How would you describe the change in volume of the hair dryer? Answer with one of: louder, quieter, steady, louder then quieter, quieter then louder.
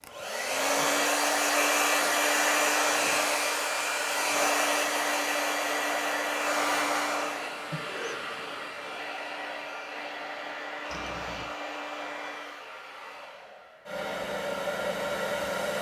quieter.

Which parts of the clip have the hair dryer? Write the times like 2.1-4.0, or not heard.
0.0-15.7.